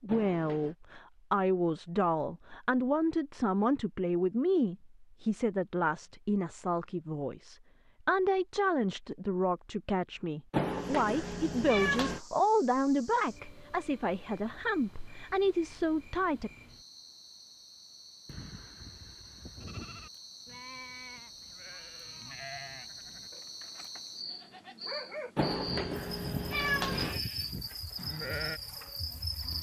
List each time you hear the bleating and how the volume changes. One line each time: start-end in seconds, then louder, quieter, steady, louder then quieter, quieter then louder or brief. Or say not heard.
18.2-28.6 louder.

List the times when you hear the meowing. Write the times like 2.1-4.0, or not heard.
0.1-0.8, 10.5-12.2, 25.4-27.2.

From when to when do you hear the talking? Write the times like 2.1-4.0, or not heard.
0.0-16.5.